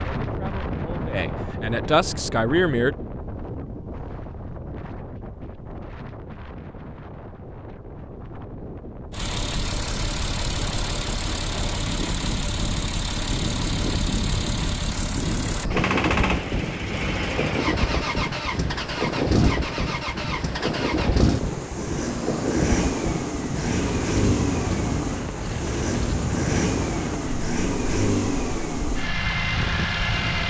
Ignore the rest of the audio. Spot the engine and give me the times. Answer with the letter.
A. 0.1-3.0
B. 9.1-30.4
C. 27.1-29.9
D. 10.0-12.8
B.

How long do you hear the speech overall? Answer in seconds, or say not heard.
3 s.